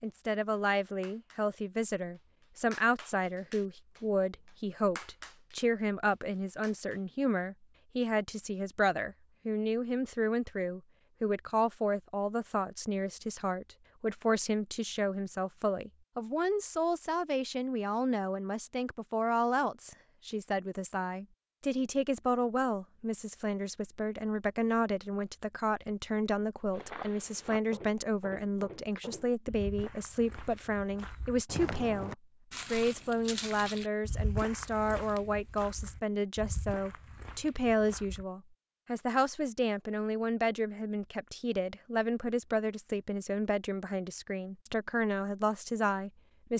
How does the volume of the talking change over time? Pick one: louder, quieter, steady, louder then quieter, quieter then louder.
steady.